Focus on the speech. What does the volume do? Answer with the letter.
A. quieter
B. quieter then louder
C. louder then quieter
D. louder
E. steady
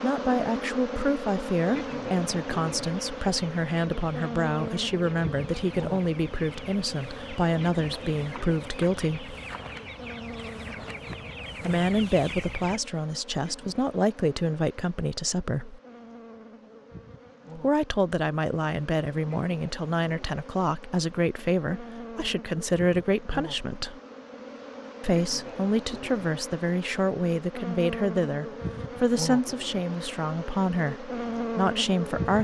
E.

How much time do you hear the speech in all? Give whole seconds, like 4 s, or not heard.
27 s.